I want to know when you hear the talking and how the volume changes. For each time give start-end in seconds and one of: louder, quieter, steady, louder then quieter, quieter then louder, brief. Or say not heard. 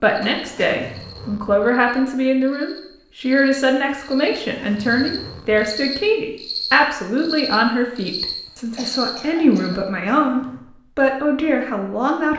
0.0-12.3 steady.